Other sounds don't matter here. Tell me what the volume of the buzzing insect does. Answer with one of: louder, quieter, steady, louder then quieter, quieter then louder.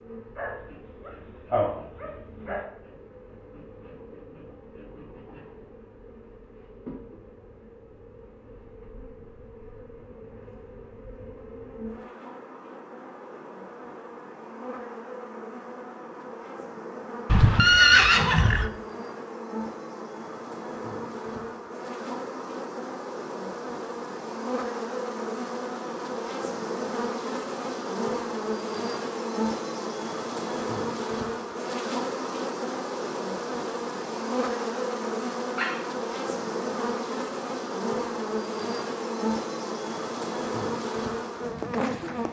louder.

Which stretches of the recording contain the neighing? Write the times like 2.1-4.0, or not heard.
17.2-18.7.